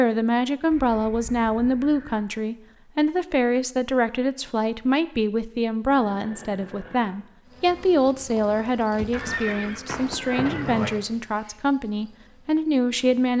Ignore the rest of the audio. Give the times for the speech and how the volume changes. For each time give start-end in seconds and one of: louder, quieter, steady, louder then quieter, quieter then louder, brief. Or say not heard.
0.0-13.3 steady.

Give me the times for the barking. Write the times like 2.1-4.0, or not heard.
not heard.